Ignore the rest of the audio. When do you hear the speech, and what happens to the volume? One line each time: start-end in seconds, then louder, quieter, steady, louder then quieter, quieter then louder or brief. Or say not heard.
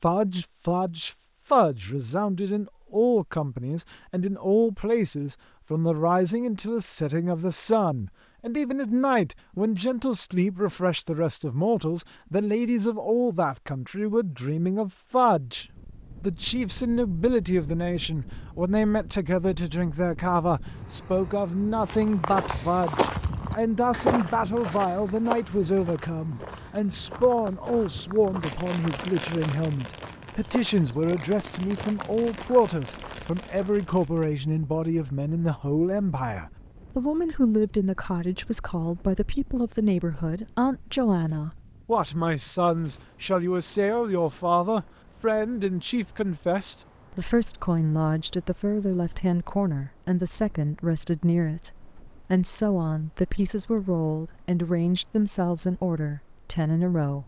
0.0-57.2 steady.